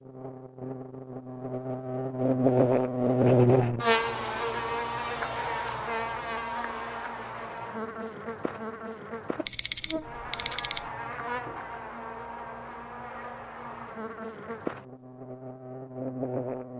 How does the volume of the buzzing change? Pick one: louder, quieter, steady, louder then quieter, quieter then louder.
quieter.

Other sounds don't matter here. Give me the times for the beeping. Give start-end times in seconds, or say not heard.
9.4-10.8.